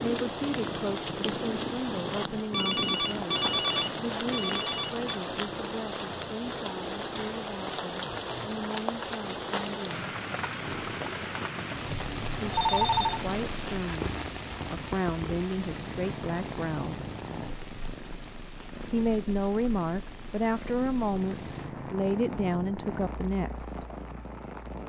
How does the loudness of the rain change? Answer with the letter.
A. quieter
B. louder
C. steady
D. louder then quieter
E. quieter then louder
A.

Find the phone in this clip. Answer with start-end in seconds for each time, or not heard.
2.5-4.9, 12.5-13.2.